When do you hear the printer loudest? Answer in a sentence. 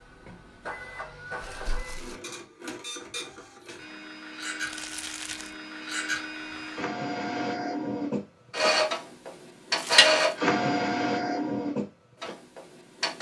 The loudest moment of the printer is at 10 seconds.